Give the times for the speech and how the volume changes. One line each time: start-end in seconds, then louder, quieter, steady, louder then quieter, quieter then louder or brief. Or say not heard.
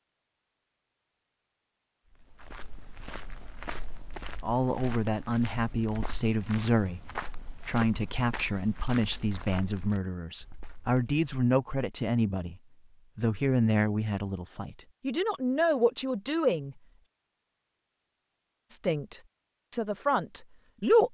4.4-16.8 steady
18.7-21.0 brief.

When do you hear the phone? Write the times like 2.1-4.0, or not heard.
not heard.